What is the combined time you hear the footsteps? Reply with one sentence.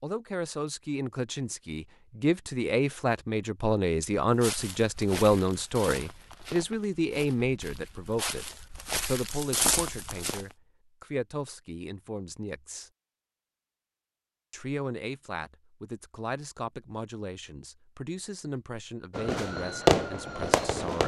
You can hear the footsteps for 6 seconds altogether.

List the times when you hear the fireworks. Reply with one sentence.
The fireworks can be heard from 19.1 to 21.0 s.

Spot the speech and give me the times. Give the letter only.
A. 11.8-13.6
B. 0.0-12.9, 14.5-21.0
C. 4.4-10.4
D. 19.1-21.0
B.